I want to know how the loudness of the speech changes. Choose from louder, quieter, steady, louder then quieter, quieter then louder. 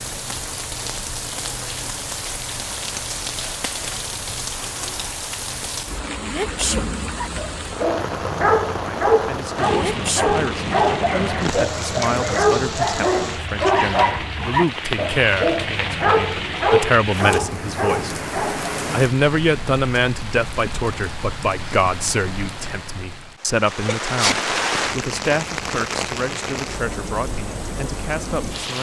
louder then quieter.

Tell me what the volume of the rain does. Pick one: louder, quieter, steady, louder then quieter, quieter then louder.
steady.